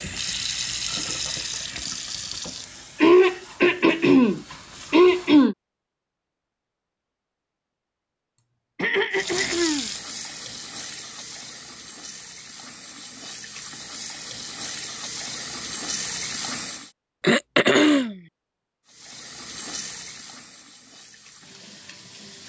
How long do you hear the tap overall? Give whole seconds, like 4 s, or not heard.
17 s.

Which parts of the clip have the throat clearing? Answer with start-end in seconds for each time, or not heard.
3.0-5.5, 8.8-9.9, 17.2-18.1.